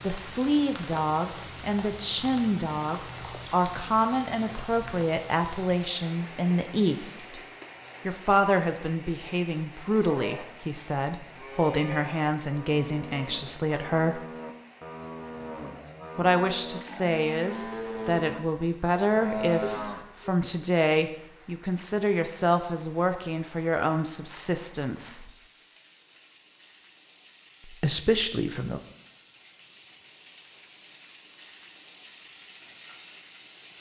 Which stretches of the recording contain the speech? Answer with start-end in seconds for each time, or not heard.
0.0-7.4, 8.1-14.2, 16.1-25.3, 27.6-28.8.